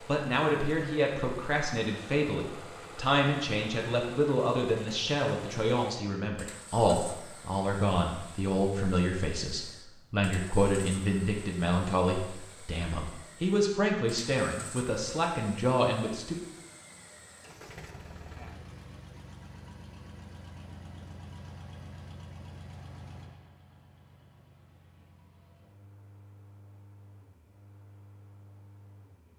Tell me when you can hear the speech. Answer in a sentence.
You can hear the speech from 0.0 to 16.4 s.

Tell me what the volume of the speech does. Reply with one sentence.
The volume of the speech stays about the same.